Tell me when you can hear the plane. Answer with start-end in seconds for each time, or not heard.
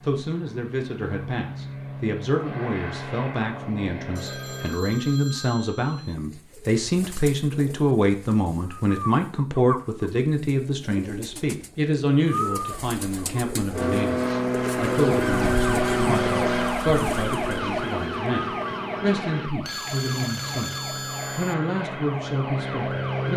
0.0-4.8, 13.7-23.3.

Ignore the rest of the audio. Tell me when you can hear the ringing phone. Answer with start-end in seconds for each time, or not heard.
4.2-6.2, 19.6-21.6.